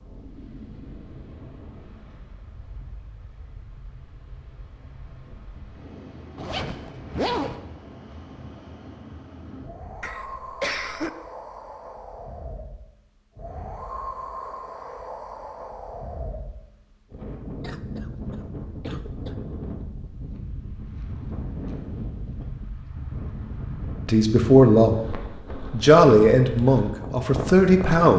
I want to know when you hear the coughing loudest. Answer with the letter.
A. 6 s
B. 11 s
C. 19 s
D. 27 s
B.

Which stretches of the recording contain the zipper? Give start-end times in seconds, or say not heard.
6.3-7.6.